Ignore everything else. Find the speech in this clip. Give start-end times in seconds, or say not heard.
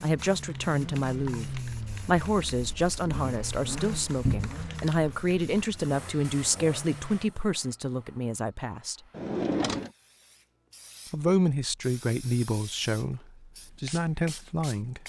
0.0-9.0, 11.1-15.0.